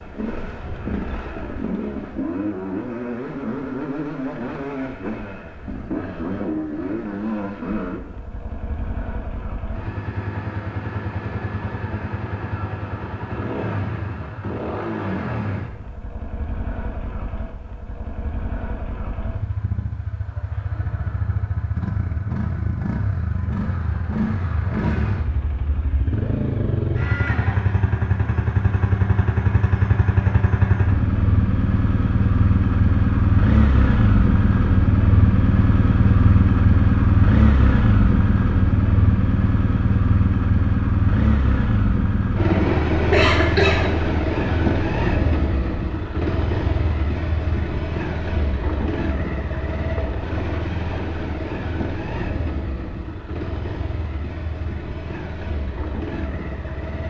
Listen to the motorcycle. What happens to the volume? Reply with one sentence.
The volume of the motorcycle goes up, then down.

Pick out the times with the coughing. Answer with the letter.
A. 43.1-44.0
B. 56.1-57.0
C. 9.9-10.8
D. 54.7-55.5
A.